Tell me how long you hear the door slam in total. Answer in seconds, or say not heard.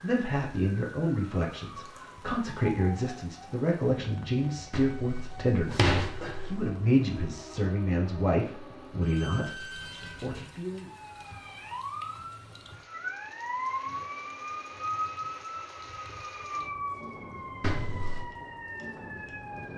3 s.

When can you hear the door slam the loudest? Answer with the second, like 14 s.
6 s.